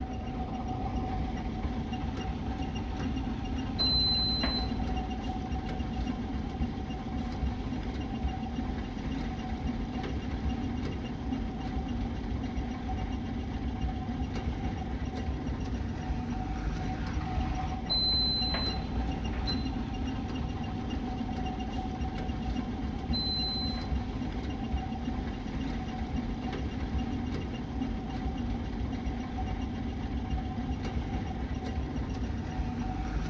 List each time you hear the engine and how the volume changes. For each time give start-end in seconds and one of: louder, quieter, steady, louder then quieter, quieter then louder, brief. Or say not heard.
0.0-33.2 steady.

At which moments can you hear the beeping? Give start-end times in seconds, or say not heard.
3.8-5.0, 17.9-19.6, 23.1-23.9.